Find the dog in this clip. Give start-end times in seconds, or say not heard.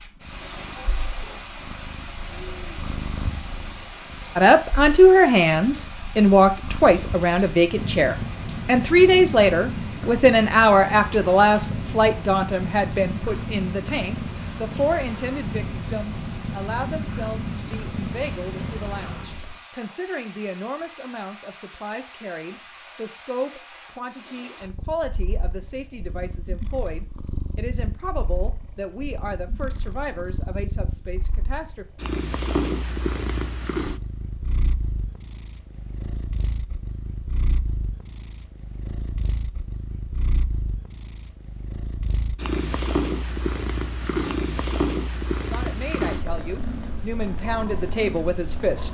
not heard.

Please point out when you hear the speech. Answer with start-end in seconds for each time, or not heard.
4.3-31.9, 45.5-48.8.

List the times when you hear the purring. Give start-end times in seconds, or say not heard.
0.0-19.6, 24.6-48.8.